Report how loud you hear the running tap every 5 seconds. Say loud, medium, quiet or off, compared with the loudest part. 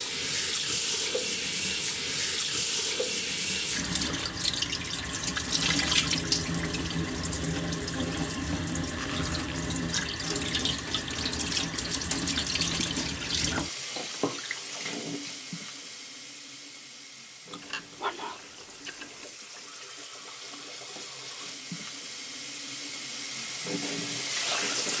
loud, loud, loud, quiet, medium.